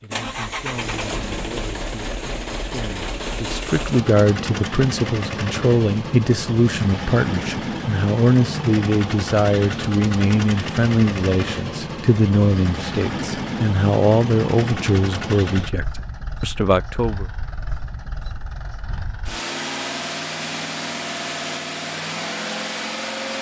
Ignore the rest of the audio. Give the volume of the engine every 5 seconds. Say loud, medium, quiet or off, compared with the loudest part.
loud, loud, loud, medium, loud.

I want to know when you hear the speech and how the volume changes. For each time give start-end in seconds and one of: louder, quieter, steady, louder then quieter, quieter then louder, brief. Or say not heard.
0.0-17.2 louder.